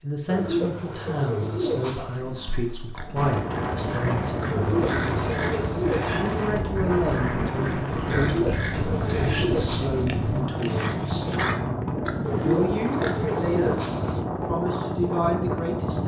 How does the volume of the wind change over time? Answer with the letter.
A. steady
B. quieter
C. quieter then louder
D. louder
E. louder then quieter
A.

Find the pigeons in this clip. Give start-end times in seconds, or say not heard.
0.2-2.2, 4.5-6.2, 8.1-10.1, 12.2-14.2.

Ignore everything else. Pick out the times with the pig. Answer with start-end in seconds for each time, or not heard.
2.0-13.4.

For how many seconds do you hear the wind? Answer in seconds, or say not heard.
13 s.